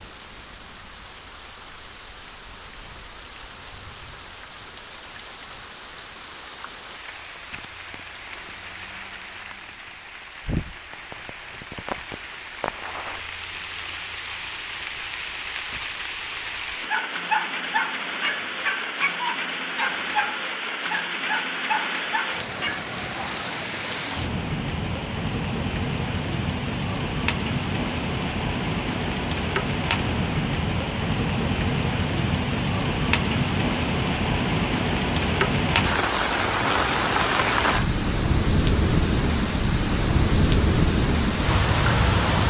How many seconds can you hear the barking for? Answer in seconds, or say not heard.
6 s.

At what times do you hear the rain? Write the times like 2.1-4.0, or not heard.
0.0-42.4.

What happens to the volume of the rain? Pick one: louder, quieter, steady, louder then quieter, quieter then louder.
louder.